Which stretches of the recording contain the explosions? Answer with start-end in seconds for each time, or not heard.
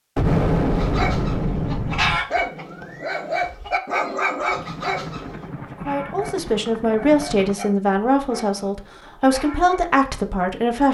0.1-2.1.